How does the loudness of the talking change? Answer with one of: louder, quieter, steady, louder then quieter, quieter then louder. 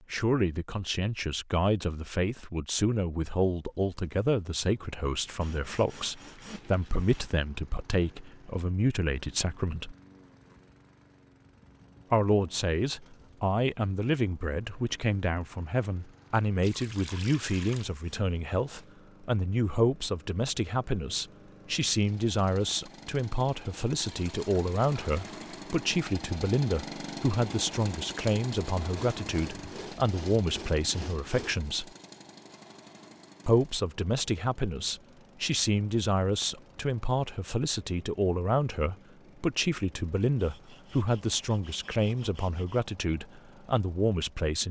steady.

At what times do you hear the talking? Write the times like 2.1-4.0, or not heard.
0.1-9.9, 12.1-31.9, 33.5-44.6.